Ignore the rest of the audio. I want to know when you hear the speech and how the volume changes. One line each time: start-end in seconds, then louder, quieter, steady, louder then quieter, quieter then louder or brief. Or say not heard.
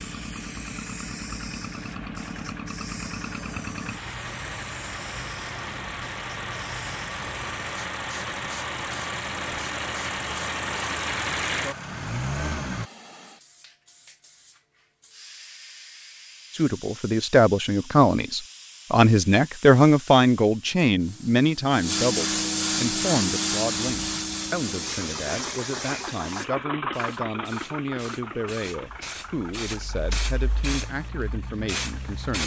16.5-32.4 quieter.